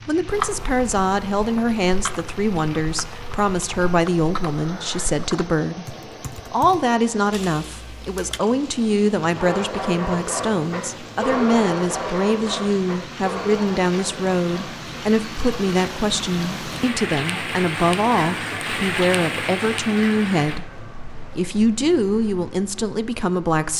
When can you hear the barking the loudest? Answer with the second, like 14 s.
11 s.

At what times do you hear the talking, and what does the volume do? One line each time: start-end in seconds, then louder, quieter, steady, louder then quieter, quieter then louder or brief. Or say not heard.
0.1-23.7 steady.